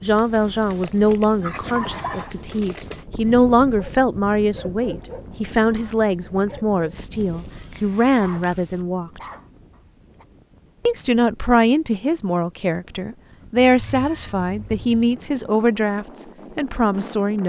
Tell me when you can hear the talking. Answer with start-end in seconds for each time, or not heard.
0.0-9.2, 10.8-17.4.